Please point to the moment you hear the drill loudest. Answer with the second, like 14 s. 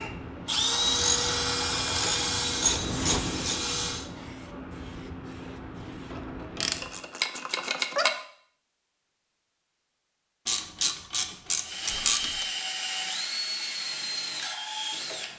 1 s.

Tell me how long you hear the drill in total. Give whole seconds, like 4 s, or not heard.
8 s.